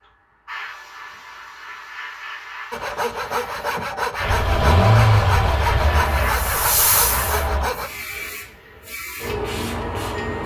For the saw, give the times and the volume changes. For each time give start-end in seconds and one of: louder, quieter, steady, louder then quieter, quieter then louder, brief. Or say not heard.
2.7-7.9 steady.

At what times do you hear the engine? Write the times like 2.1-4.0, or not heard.
4.2-7.7.